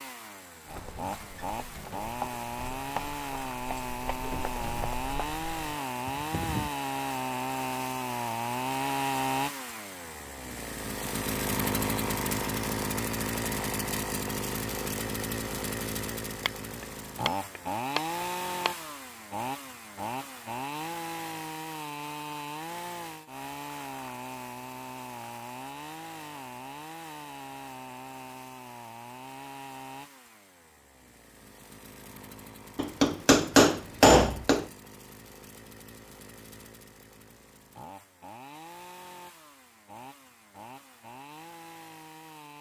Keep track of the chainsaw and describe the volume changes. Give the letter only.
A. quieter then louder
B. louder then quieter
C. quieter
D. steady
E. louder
C.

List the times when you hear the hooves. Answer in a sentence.
The hooves can be heard from 0.7 to 6.8 s.